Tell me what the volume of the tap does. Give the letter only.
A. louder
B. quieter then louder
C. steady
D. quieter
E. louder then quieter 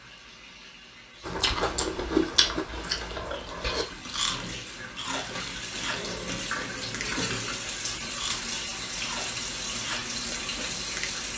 A.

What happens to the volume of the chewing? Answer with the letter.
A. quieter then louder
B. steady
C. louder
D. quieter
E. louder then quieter
D.